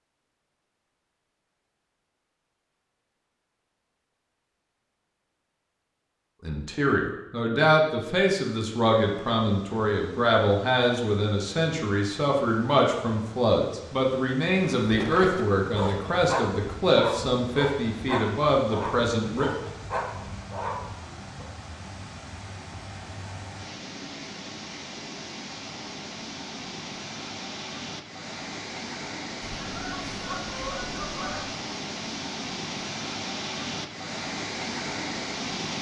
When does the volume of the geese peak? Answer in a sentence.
The loudest moment of the geese is at 31 seconds.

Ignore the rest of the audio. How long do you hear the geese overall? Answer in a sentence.
You can hear the geese for 2 seconds altogether.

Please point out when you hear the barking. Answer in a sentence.
The barking can be heard from 14.8 to 21.4 s.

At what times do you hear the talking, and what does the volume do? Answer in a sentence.
The talking can be heard from 6.5 to 19.5 s, at a steady volume.